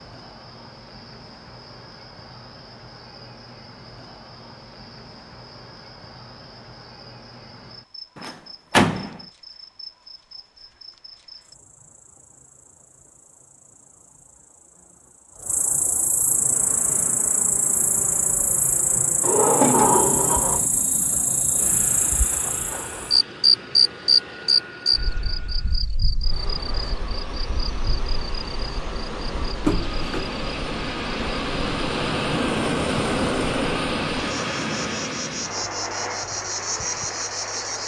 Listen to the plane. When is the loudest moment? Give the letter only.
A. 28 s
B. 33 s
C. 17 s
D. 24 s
B.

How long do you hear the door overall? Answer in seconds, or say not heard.
3 s.